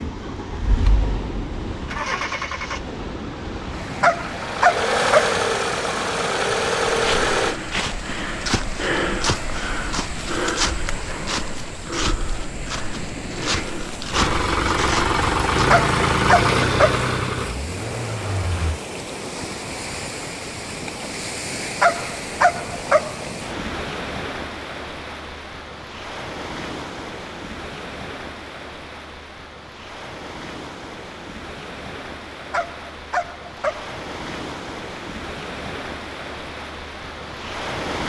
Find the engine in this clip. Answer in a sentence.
You can hear the engine from 0.0 to 7.5 s and from 14.1 to 18.8 s.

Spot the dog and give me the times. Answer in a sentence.
The dog can be heard from 4.0 to 5.3 s, from 15.7 to 17.1 s, from 21.8 to 23.2 s and from 32.5 to 33.9 s.